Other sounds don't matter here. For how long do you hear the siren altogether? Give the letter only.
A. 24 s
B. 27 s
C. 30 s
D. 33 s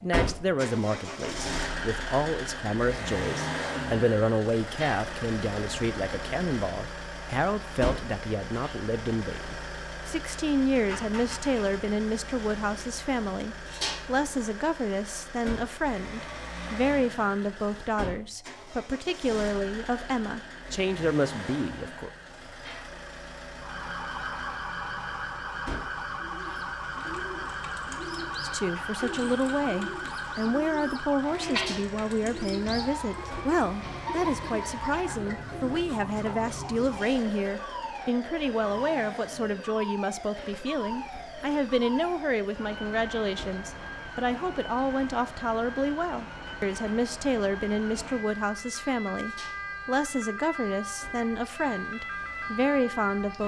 C.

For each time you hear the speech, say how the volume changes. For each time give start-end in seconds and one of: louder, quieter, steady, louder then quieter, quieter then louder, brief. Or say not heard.
0.0-22.1 steady
28.4-53.4 steady.